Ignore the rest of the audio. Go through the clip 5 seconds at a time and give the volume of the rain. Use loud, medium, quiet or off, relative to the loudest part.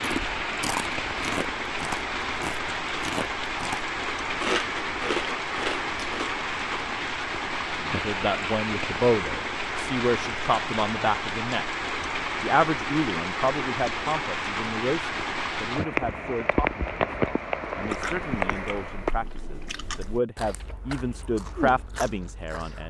loud, loud, loud, loud, off.